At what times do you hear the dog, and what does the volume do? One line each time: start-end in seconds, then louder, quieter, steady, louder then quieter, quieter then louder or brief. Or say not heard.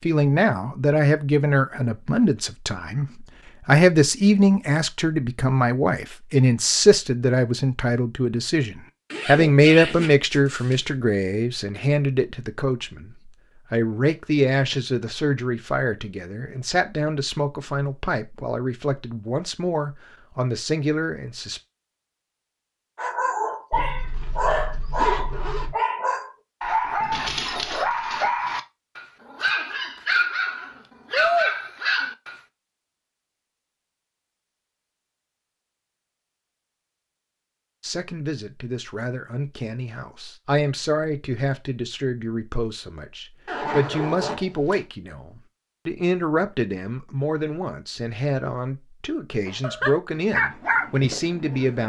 22.9-32.4 steady
49.5-51.8 brief.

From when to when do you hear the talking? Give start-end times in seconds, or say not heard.
0.0-3.0, 3.6-21.6, 37.8-51.8.